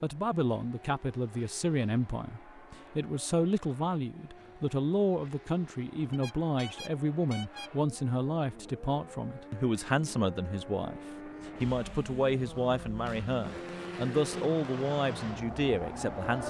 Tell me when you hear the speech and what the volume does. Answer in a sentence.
The speech can be heard from 0.0 to 16.4 s, at a steady volume.